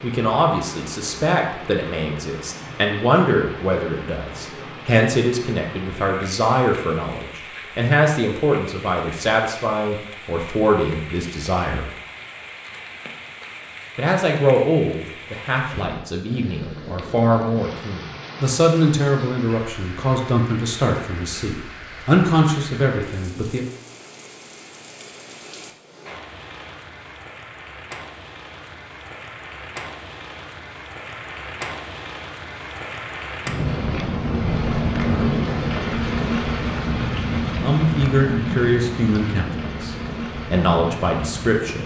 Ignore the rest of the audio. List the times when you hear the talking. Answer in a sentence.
The talking can be heard from 0.0 to 11.9 s, from 13.9 to 23.6 s and from 37.6 to 41.8 s.